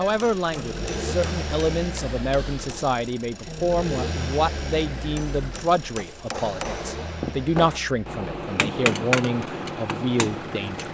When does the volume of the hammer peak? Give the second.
9 s.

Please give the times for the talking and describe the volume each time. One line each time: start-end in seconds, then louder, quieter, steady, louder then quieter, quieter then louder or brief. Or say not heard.
0.0-10.8 steady.